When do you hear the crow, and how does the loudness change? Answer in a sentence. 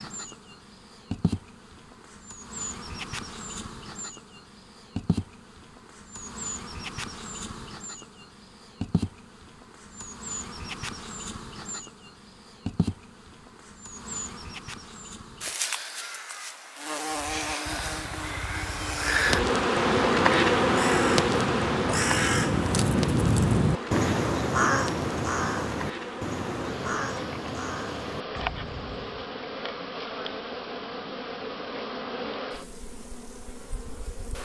The crow can be heard from 17.1 to 29.4 s, getting louder then quieter.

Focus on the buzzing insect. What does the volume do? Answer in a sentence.
The volume of the buzzing insect goes up, then down.